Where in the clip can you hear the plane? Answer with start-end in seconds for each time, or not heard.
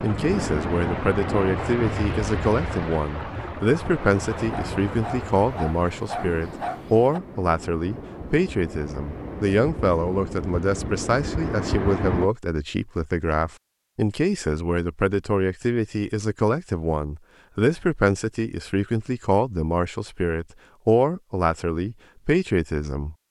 not heard.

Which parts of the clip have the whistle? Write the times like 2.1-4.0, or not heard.
not heard.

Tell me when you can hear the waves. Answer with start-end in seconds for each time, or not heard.
0.0-12.3.